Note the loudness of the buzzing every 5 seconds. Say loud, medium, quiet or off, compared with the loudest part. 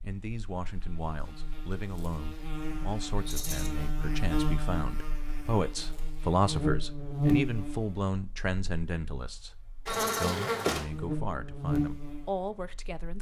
medium, loud, loud.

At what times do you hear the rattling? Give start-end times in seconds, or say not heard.
3.2-3.7, 9.8-10.3.